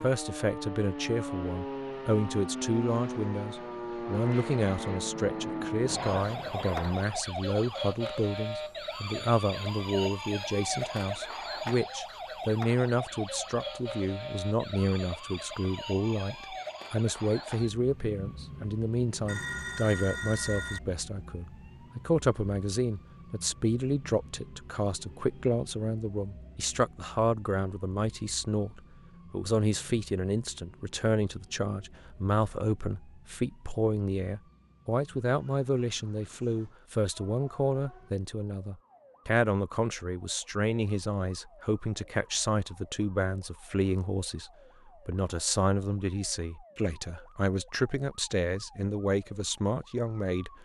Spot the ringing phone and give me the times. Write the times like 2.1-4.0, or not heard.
19.2-20.8.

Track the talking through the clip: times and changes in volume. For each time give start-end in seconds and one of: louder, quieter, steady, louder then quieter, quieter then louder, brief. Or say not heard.
0.0-50.6 steady.